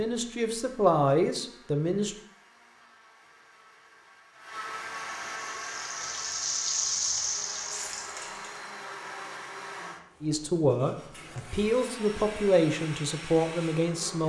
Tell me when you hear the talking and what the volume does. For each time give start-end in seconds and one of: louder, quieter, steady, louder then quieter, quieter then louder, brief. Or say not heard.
0.0-2.1 brief
10.2-14.2 steady.